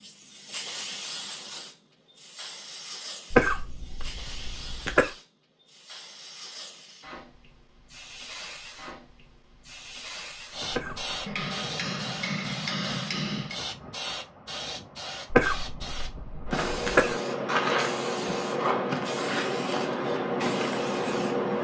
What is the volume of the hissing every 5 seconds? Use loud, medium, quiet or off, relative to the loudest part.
quiet, quiet, medium, loud, loud.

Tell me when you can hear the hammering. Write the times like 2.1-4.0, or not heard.
11.2-13.6.